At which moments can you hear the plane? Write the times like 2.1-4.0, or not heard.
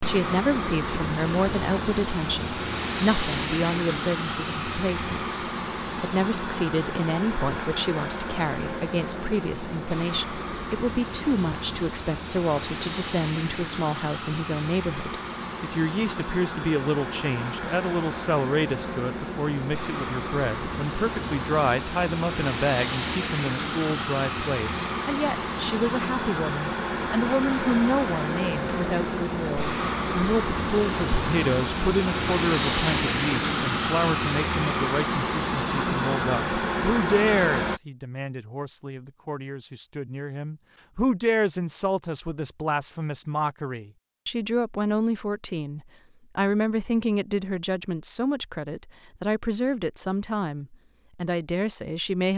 0.0-37.8.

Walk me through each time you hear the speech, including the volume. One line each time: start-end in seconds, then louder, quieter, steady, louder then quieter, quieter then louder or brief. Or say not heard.
0.0-52.3 steady.